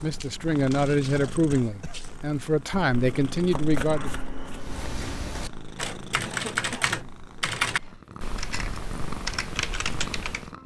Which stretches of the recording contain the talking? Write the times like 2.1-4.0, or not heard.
0.0-4.1.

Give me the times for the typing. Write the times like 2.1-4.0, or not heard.
4.5-10.5.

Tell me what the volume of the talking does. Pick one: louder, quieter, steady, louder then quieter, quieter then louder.
quieter then louder.